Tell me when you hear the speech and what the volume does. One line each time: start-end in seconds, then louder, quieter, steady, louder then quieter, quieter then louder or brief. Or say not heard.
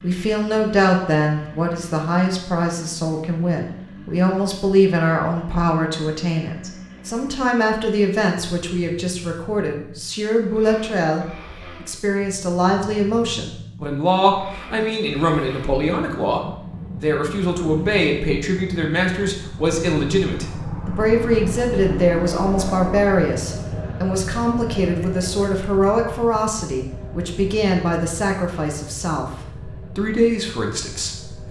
0.0-31.4 steady.